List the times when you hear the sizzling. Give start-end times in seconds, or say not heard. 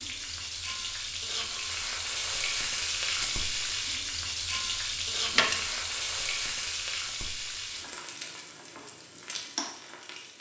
0.0-10.3.